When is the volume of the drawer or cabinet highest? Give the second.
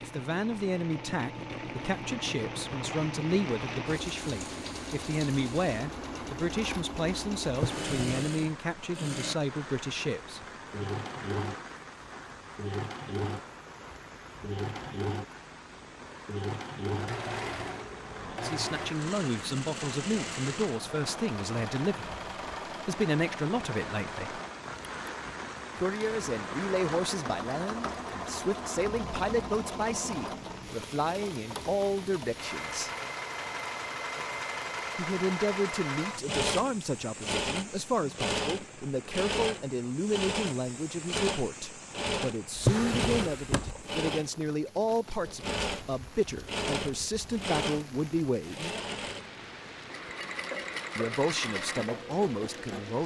43 s.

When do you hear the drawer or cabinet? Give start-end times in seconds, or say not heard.
7.5-8.1, 42.5-43.8.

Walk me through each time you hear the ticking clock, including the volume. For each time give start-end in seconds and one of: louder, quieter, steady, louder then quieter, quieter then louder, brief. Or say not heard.
not heard.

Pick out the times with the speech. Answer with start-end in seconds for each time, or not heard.
0.0-10.9, 18.1-22.1, 22.9-24.4, 25.8-32.9, 35.0-48.8, 51.0-53.0.